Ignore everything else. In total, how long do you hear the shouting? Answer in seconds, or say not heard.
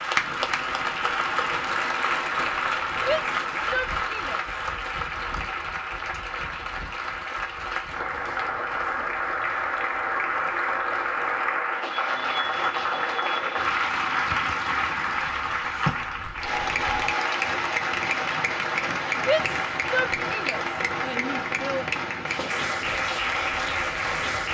4 s.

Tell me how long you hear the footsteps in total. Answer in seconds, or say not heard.
not heard.